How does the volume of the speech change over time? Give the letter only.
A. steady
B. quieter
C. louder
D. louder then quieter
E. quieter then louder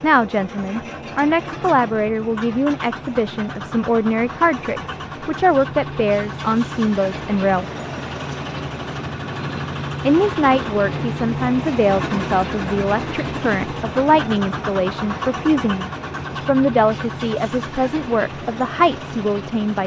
A.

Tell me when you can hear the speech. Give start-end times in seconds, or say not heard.
0.0-7.7, 10.1-19.8.